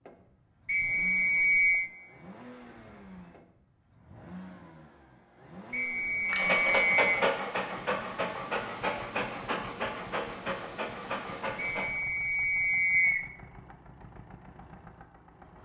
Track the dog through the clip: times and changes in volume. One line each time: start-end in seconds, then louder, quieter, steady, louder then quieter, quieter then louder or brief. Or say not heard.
6.2-11.9 quieter.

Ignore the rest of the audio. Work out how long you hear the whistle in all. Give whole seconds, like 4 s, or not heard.
4 s.